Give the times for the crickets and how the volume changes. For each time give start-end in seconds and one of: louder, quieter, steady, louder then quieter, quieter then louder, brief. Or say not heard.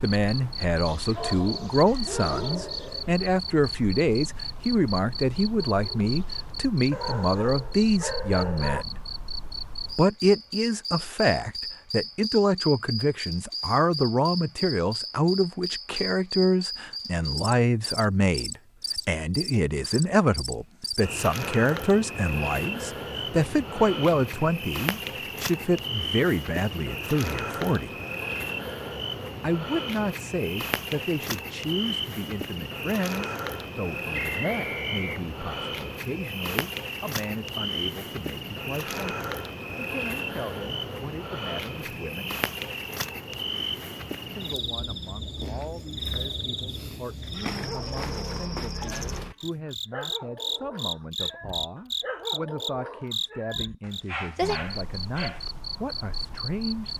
0.0-56.9 steady.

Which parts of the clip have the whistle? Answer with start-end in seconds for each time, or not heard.
34.1-35.2.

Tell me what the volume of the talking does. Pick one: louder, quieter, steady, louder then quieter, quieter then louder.
quieter.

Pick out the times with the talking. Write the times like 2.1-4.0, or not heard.
0.0-8.9, 9.9-27.9, 29.4-42.4, 44.3-56.9.